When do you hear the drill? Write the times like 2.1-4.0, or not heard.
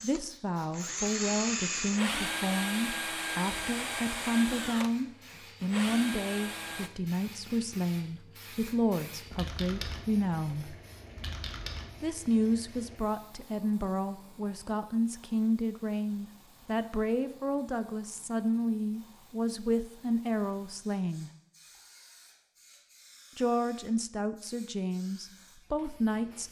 0.0-6.9.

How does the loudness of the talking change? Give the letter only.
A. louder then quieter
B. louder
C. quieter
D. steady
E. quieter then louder
D.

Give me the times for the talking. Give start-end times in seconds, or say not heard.
0.0-10.8, 12.0-21.3, 23.4-26.4.